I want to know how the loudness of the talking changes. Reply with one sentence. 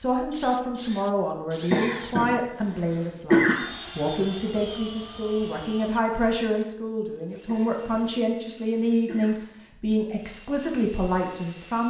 The loudness of the talking stays about the same.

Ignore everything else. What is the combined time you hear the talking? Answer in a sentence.
The talking can be heard for 12 seconds in total.